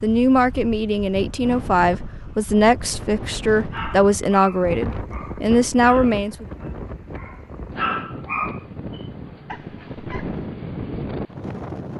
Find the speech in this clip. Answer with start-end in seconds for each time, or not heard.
0.0-6.5.